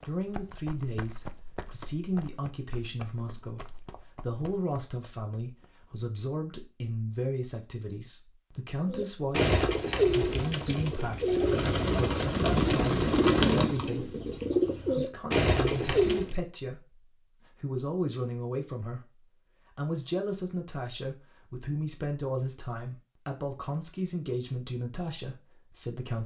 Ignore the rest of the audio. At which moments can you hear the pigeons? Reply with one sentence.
The pigeons can be heard from 8.8 to 16.4 s.